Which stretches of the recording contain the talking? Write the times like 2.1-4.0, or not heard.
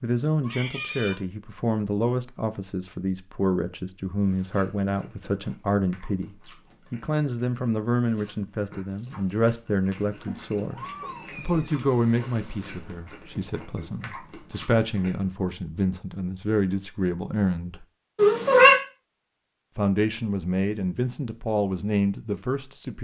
0.0-17.9, 19.8-23.0.